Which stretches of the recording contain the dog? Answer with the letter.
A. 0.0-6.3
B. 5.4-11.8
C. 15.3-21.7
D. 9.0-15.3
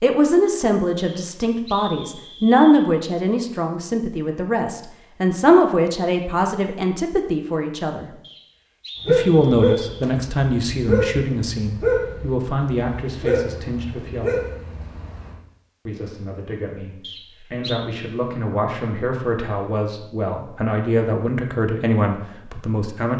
D.